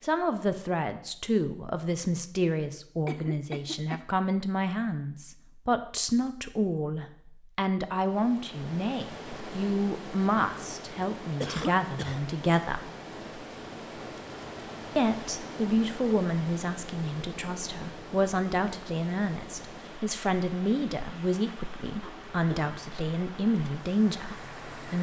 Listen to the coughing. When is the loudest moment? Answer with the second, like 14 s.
12 s.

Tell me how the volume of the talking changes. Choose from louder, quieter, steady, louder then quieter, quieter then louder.
steady.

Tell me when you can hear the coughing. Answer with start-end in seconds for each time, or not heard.
3.0-4.0, 11.4-12.2, 22.0-22.9.